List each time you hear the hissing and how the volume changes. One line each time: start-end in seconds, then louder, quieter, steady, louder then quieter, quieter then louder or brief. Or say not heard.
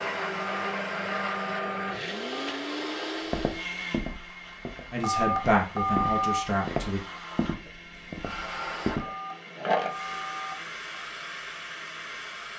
0.0-12.5 quieter then louder.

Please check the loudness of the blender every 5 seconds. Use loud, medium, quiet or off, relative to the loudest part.
loud, quiet, quiet.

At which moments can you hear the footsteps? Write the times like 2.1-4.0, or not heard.
3.3-9.1.